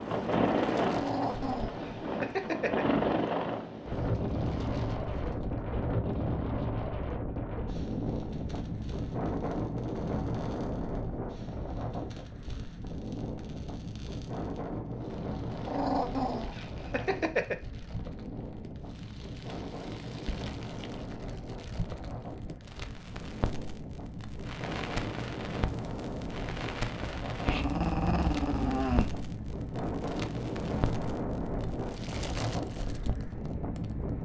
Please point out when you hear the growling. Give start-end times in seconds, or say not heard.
0.9-2.9, 15.7-17.6, 27.4-29.1.